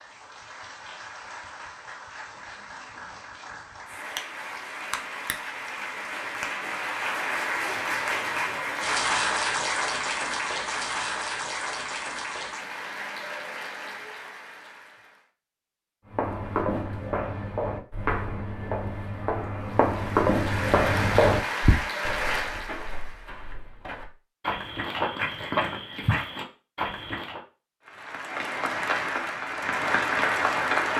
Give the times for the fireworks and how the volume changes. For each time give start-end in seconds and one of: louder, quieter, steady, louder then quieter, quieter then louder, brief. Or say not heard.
not heard.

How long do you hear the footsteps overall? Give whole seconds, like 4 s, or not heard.
11 s.